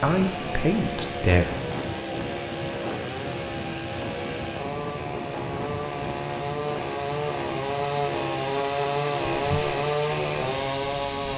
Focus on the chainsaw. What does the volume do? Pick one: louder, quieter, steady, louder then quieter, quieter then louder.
louder.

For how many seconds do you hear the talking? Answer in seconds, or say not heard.
2 s.